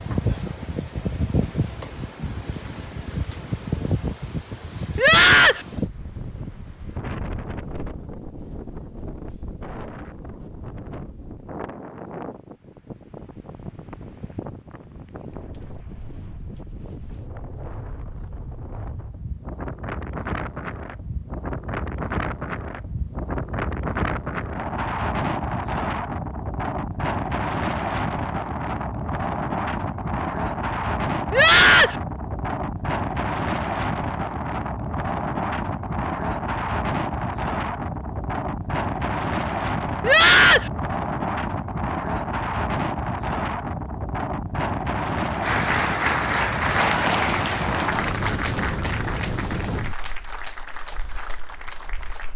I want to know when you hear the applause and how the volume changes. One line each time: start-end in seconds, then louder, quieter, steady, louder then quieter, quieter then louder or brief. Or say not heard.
45.4-52.3 quieter.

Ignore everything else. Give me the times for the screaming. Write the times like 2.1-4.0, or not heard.
5.0-5.7, 31.3-31.9, 40.0-40.7.